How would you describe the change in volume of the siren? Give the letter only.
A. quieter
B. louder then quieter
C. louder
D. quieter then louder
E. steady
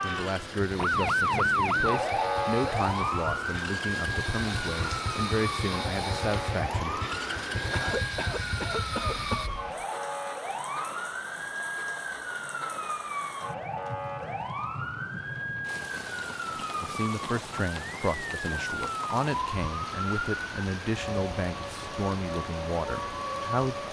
A.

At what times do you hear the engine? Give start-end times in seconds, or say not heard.
0.0-9.5.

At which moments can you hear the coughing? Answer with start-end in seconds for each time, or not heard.
7.7-9.6.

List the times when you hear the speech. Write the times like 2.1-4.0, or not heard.
0.0-7.0, 16.8-23.8.